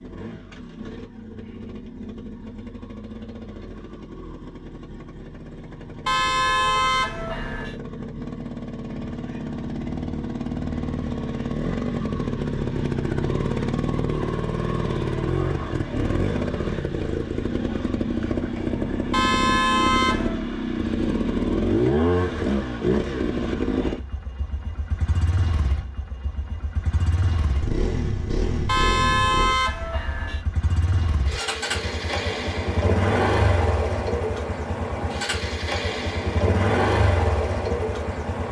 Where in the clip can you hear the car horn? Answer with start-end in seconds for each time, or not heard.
6.0-7.8, 19.1-20.4, 28.6-30.4.